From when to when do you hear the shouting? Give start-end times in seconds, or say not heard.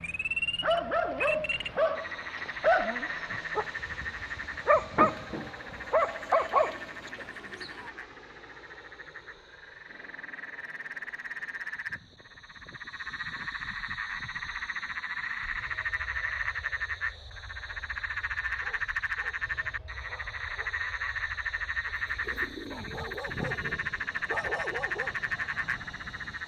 not heard.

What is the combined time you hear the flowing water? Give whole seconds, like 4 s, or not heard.
not heard.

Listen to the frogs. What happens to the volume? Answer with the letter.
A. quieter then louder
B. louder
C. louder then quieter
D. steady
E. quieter
A.